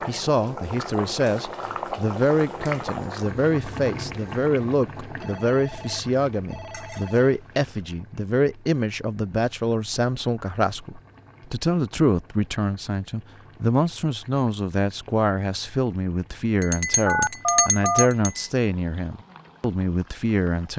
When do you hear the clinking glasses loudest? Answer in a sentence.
The loudest moment of the clinking glasses is at 18 seconds.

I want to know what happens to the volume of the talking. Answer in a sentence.
The volume of the talking stays about the same.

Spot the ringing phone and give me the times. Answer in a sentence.
The ringing phone can be heard from 5.2 to 7.3 s and from 17.1 to 18.1 s.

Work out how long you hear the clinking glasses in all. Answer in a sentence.
You can hear the clinking glasses for 3 seconds altogether.